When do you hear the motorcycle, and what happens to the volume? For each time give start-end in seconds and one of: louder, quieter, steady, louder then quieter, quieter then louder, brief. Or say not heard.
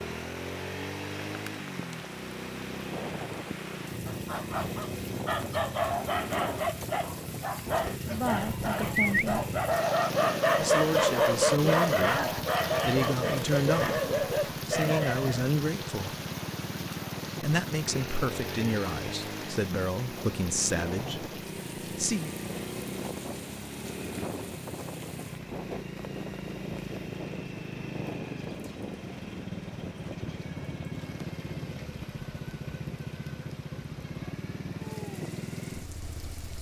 0.0-36.5 steady.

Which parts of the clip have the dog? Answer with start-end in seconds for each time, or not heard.
4.0-15.4.